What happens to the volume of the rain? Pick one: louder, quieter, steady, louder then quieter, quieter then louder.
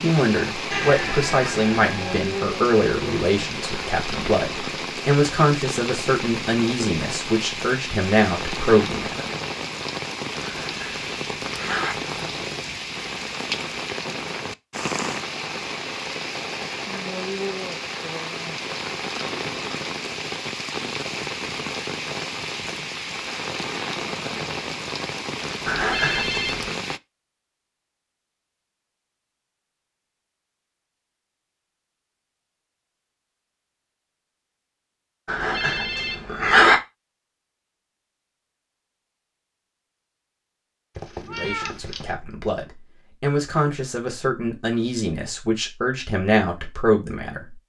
steady.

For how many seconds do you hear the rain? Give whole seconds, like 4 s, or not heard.
27 s.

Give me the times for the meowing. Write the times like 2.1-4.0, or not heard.
0.7-2.2, 41.0-42.1.